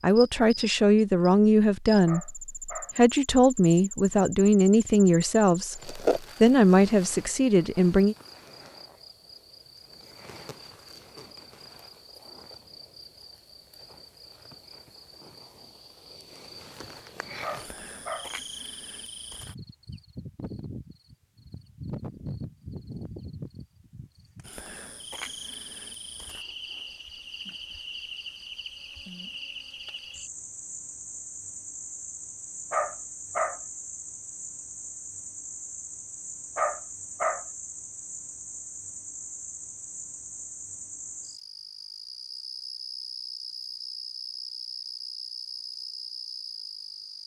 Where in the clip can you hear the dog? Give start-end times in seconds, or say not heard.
2.0-3.0, 17.4-18.3, 32.7-33.6, 36.5-37.5.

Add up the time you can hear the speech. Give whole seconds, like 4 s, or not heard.
8 s.